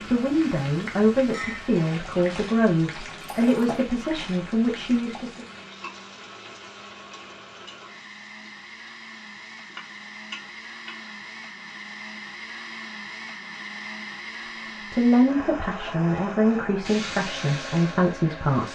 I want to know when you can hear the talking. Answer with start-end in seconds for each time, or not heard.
0.1-5.5, 14.9-18.7.